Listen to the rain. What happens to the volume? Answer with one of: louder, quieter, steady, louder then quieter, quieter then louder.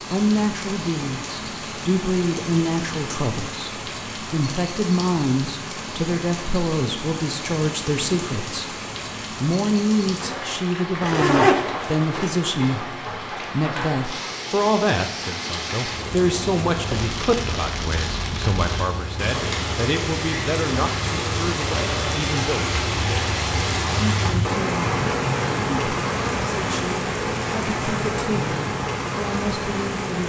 louder.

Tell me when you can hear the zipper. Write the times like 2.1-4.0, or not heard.
11.0-12.3.